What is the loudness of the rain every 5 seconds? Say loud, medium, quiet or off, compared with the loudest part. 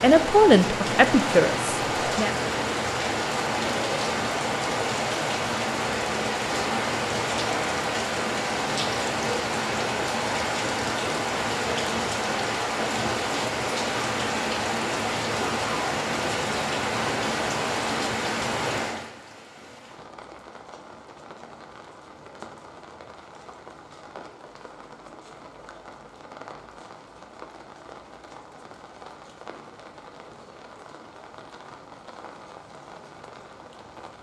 loud, loud, loud, loud, quiet, quiet, quiet.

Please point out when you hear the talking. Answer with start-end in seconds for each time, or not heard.
0.0-2.4.